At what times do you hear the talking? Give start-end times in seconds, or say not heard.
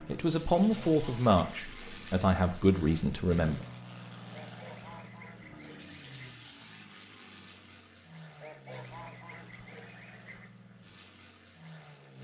0.1-3.6.